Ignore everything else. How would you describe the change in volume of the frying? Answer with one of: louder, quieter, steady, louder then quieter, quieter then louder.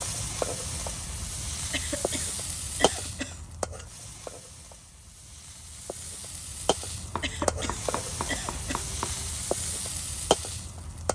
quieter then louder.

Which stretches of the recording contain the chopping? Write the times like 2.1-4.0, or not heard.
7.1-9.3.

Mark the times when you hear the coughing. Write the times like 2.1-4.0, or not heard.
1.7-3.5, 7.2-8.9.